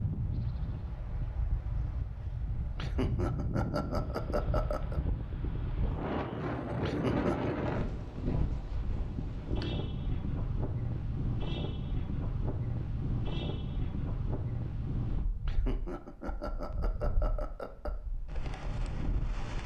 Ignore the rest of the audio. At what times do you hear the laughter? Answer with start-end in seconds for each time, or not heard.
2.8-5.0, 6.8-7.5, 15.4-17.9.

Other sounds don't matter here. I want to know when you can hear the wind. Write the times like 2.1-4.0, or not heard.
0.0-19.6.